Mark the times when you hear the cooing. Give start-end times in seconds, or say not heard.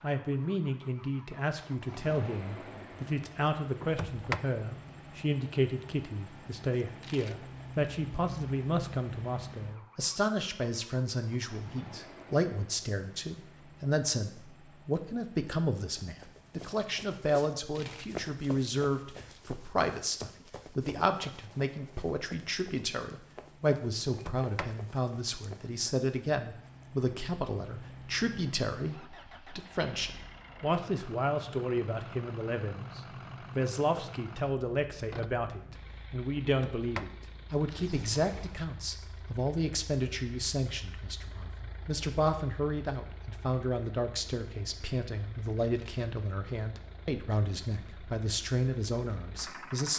not heard.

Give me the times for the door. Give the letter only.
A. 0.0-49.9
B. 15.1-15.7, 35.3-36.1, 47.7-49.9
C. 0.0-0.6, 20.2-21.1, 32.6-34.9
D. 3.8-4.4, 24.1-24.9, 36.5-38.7
D.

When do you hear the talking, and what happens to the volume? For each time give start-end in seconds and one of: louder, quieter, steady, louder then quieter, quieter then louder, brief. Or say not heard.
0.0-49.9 steady.